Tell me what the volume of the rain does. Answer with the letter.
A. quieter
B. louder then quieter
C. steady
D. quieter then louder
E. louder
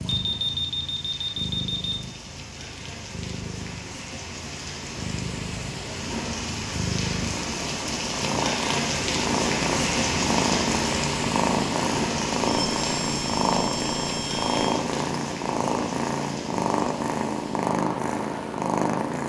B.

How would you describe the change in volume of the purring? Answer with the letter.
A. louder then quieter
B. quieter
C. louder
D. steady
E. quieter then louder
C.